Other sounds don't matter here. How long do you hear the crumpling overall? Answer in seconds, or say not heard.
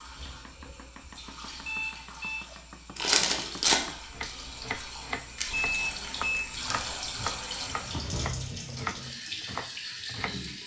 2 s.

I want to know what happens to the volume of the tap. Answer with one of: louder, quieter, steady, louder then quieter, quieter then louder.
louder.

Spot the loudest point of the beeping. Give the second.
6 s.